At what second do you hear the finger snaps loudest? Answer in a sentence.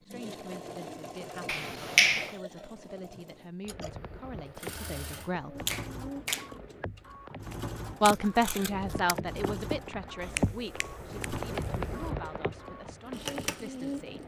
The loudest moment of the finger snaps is at 2 seconds.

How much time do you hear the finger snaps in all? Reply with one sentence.
The finger snaps can be heard for 4 seconds in total.